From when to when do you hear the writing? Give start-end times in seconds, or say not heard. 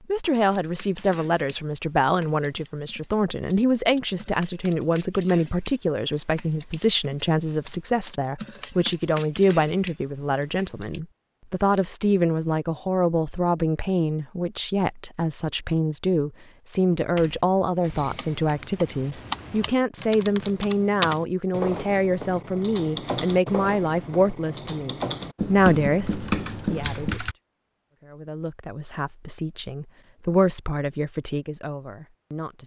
25.4-27.2.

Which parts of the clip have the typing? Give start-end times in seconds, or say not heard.
0.5-11.0, 17.0-27.4.